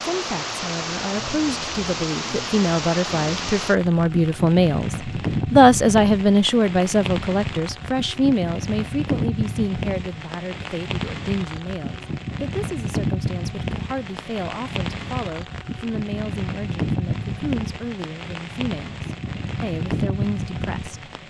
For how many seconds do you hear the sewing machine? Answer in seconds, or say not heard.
not heard.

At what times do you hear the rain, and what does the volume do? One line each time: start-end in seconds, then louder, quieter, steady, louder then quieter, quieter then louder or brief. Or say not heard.
0.0-21.2 steady.